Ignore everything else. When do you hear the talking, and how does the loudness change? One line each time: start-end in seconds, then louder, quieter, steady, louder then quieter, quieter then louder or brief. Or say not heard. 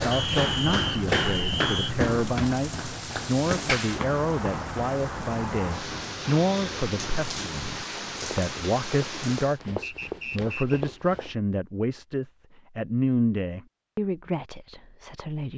0.0-15.5 steady.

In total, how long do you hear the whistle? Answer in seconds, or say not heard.
3 s.